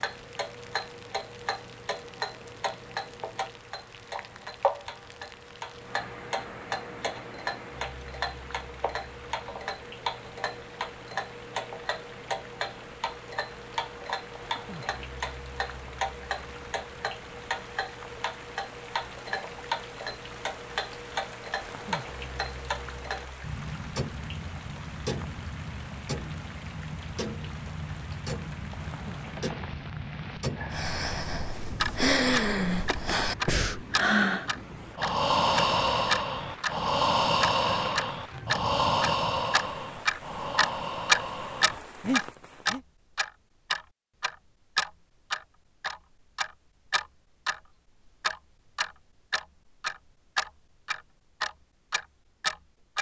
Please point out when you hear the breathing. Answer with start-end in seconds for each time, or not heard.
30.7-42.8.